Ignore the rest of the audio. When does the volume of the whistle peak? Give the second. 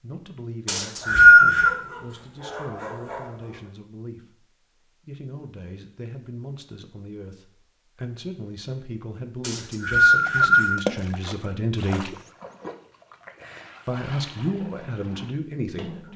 1 s.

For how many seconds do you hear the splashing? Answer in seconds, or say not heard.
6 s.